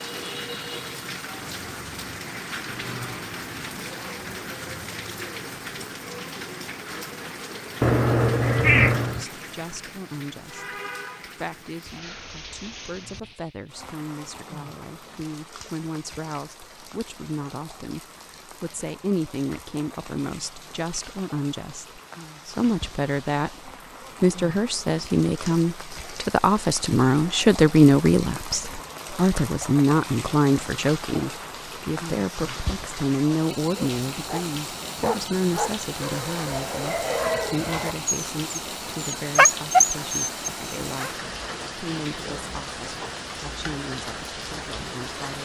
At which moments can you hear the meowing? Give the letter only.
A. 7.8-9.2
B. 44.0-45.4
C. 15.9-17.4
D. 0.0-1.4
A.